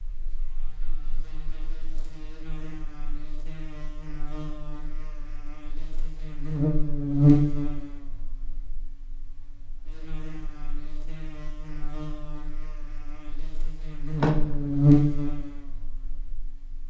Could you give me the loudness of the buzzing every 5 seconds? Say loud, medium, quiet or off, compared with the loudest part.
quiet, loud, loud, medium.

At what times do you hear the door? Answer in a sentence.
The door can be heard from 14.2 to 14.8 s.